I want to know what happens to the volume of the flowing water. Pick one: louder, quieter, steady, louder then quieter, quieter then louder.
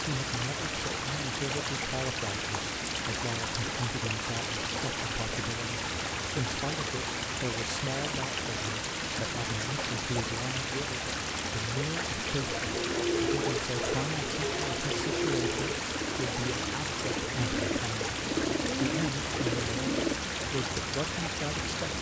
steady.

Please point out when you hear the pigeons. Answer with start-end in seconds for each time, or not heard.
12.4-20.1.